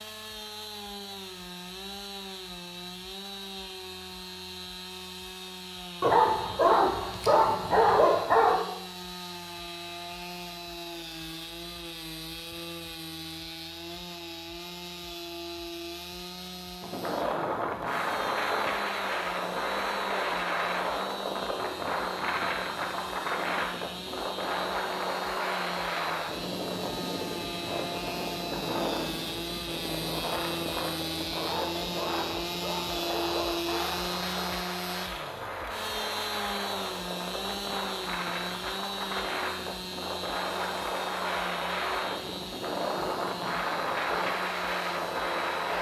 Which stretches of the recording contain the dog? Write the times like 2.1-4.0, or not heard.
6.0-8.6, 31.4-34.1.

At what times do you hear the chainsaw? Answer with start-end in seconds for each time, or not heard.
0.0-45.7.